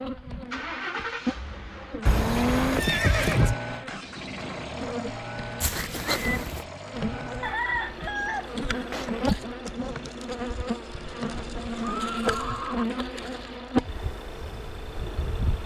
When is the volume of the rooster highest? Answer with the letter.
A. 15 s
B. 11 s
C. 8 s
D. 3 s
C.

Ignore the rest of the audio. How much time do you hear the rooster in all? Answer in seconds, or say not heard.
2 s.